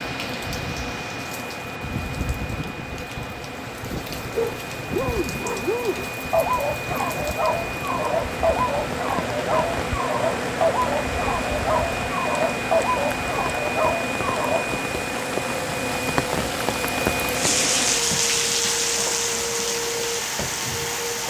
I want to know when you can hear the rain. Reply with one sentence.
You can hear the rain from 0.0 to 21.2 s.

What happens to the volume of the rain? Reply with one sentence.
The volume of the rain goes up.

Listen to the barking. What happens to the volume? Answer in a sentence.
The volume of the barking stays about the same.